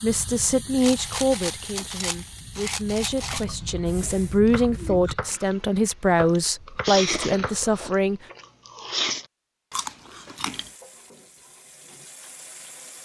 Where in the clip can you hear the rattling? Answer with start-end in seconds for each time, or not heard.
0.8-3.5.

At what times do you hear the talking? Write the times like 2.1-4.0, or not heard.
0.0-8.2.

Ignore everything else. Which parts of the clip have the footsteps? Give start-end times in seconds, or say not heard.
not heard.